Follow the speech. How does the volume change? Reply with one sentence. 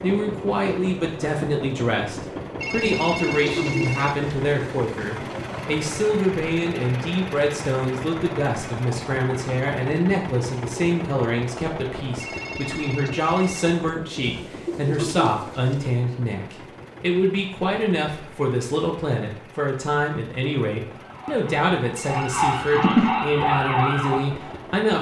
The volume of the speech stays about the same.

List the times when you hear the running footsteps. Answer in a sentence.
You can't hear the running footsteps here.